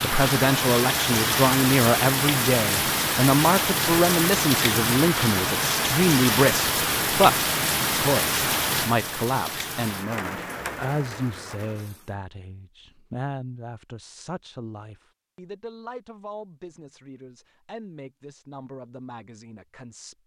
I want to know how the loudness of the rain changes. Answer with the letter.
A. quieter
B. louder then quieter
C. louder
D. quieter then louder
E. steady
A.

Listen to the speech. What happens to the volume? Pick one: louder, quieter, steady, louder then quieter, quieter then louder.
quieter.